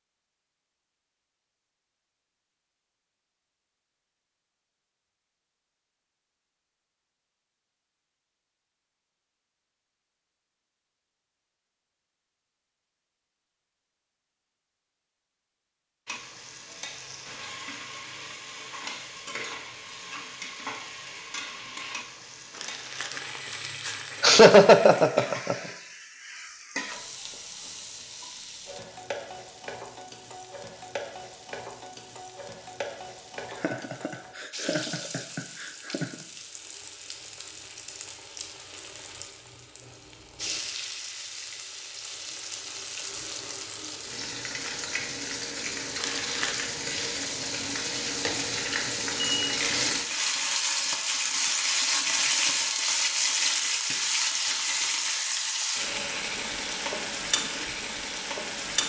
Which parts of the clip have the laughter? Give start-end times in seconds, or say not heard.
24.2-25.6, 33.5-36.2.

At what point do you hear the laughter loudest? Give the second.
25 s.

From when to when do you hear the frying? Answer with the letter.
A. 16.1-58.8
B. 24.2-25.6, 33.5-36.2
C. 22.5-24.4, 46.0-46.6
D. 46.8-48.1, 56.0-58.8
A.